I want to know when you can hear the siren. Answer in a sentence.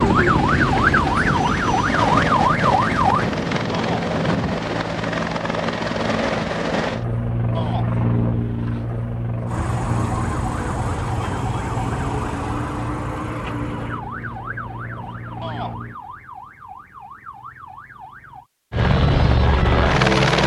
The siren can be heard from 0.0 to 3.3 s and from 9.4 to 18.5 s.